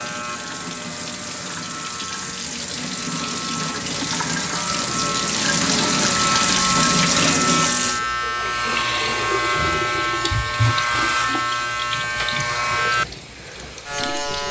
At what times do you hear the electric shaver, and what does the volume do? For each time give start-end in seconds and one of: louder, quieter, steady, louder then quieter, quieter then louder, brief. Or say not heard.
0.0-14.4 louder.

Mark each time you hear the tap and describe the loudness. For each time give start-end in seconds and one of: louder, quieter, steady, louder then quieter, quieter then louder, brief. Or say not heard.
0.0-14.4 louder then quieter.